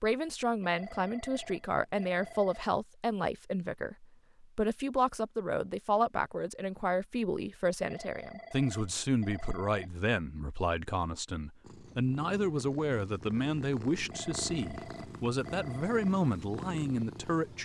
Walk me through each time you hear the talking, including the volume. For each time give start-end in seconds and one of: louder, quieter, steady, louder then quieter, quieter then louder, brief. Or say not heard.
0.0-17.6 steady.